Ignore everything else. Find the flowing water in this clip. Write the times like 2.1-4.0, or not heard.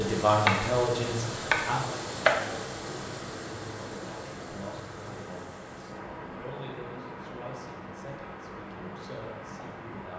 0.0-10.1.